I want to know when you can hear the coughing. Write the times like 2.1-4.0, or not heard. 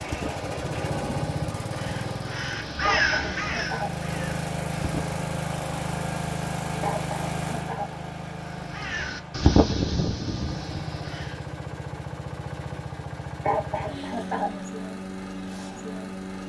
2.8-3.9, 6.8-7.9, 13.4-14.5.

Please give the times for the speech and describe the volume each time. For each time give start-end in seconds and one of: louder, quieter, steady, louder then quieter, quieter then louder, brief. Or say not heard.
not heard.